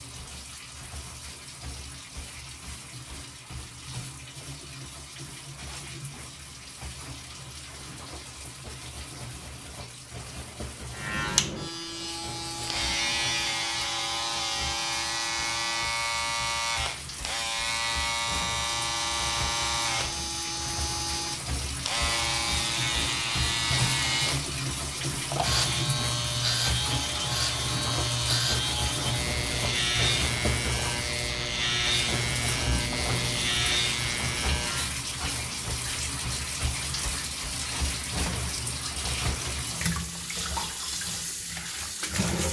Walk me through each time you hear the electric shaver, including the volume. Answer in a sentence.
You can hear the electric shaver from 10.9 to 34.9 s, at a steady volume.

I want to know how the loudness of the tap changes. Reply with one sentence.
The volume of the tap goes up.